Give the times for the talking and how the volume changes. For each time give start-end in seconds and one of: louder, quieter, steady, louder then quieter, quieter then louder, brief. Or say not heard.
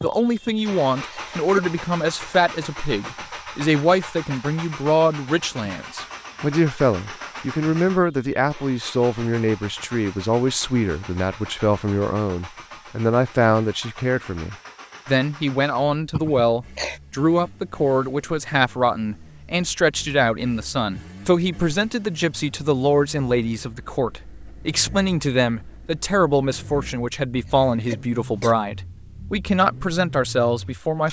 0.0-31.0 steady.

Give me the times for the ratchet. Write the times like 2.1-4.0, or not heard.
not heard.